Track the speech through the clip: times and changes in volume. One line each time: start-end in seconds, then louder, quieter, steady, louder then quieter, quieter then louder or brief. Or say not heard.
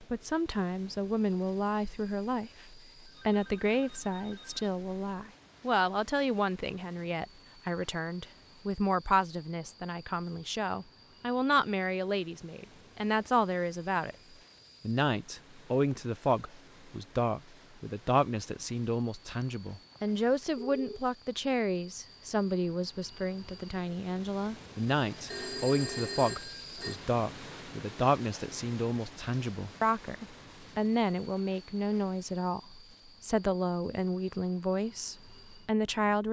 0.0-14.2 steady
14.8-36.2 steady.